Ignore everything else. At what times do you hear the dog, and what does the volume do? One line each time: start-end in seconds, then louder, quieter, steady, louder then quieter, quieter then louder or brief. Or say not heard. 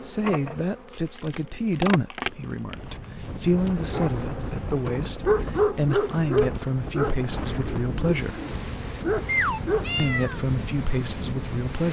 3.9-9.8 quieter then louder.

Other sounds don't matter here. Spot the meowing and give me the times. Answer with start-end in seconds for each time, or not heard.
8.4-10.4.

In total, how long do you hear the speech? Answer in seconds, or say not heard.
10 s.